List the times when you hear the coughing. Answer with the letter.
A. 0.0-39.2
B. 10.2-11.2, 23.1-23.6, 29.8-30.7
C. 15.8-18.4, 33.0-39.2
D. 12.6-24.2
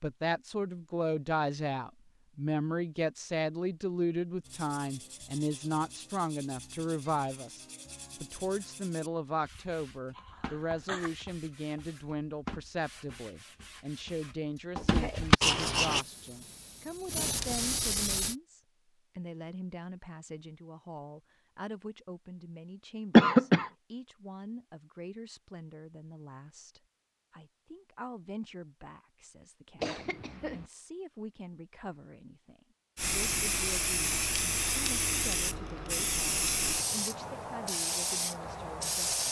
B.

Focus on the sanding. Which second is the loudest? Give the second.
15 s.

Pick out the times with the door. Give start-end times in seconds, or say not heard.
not heard.